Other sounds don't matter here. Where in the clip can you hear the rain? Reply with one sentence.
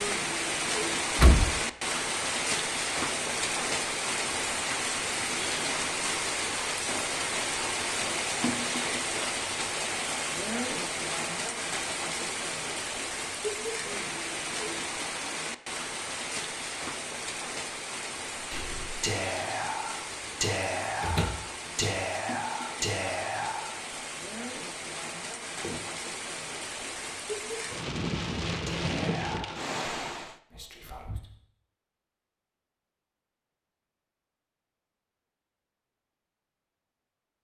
The rain can be heard from 0.0 to 30.4 s.